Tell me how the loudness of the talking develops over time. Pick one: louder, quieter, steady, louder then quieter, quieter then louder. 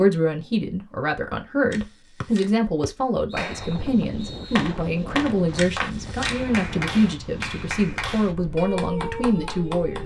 steady.